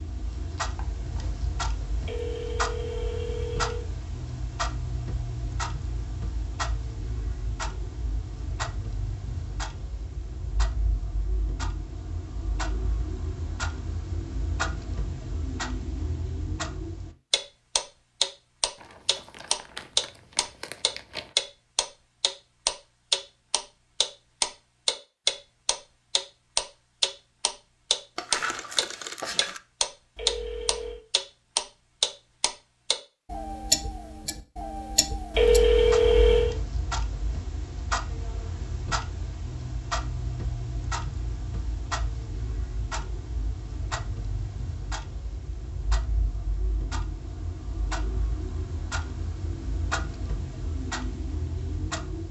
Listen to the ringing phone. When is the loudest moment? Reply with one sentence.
The volume of the ringing phone peaks at 36 seconds.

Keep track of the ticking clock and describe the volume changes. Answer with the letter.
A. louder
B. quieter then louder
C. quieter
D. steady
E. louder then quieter
E.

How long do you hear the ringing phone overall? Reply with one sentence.
You can hear the ringing phone for 4 seconds altogether.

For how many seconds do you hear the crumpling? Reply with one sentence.
The crumpling can be heard for 4 seconds in total.